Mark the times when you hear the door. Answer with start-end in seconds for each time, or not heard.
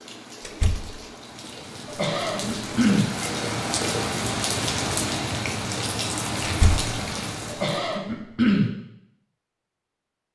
0.4-0.9, 6.4-6.9.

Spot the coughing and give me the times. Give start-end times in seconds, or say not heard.
1.9-3.0, 7.5-8.7.